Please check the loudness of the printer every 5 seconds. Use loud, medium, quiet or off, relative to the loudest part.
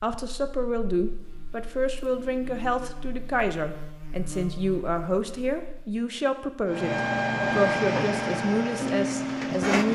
off, loud.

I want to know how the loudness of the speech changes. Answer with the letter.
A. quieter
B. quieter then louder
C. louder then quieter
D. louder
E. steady
E.